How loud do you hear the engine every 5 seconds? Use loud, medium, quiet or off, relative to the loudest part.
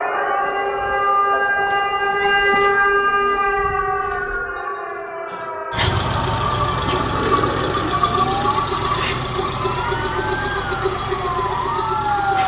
off, loud, loud.